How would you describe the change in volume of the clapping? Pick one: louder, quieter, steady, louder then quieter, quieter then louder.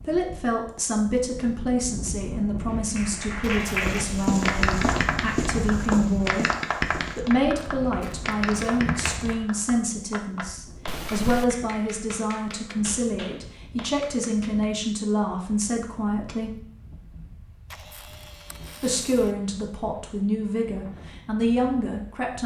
quieter.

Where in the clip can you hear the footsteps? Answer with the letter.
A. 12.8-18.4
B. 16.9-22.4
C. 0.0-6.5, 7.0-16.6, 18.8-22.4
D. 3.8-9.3
D.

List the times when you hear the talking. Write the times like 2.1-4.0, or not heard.
0.0-6.5, 7.0-16.6, 18.8-22.4.